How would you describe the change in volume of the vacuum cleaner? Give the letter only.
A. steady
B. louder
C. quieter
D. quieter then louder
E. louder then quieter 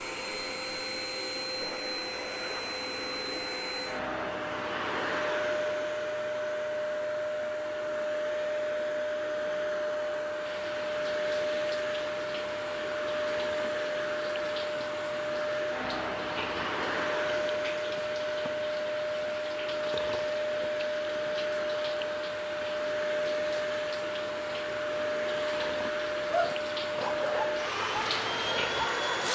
A.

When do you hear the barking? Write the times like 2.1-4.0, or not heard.
26.3-29.3.